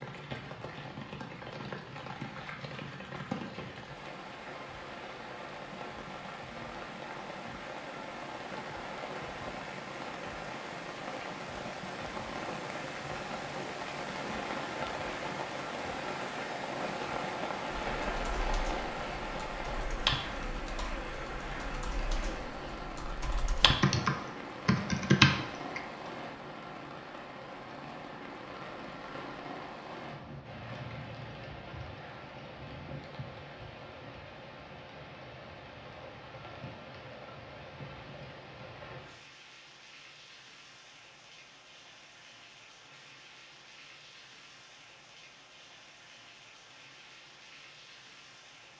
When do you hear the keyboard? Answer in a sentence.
The keyboard can be heard from 17.9 to 25.8 s.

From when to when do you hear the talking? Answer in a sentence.
You can't hear the talking here.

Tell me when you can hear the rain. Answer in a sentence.
The rain can be heard from 0.0 to 48.7 s.